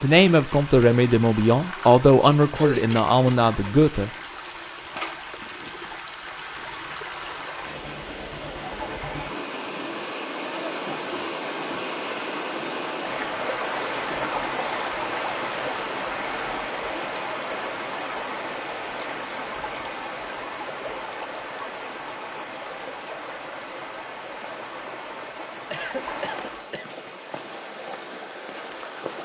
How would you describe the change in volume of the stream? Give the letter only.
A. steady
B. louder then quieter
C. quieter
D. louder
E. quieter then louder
B.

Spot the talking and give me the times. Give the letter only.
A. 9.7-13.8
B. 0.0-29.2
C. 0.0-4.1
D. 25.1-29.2
C.